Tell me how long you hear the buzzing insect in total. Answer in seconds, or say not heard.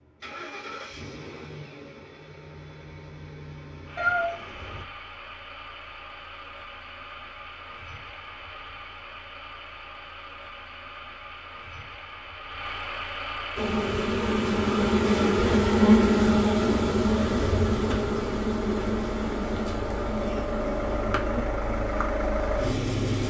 10 s.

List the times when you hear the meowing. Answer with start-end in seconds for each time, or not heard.
4.0-4.8.